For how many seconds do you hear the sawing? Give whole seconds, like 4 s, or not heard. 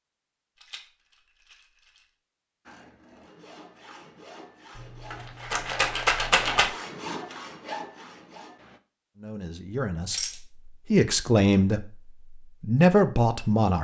6 s.